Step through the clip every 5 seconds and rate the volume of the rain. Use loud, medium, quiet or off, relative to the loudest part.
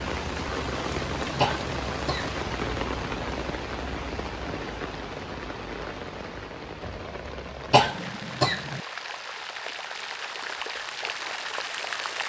loud, medium, loud.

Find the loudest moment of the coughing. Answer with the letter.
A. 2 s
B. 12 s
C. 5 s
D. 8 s
D.